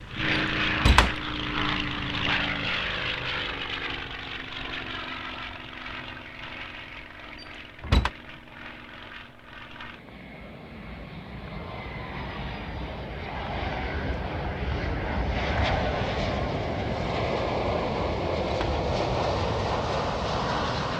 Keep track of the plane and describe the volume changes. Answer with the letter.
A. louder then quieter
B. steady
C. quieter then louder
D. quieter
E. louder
C.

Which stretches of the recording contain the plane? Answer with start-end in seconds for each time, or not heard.
0.0-20.9.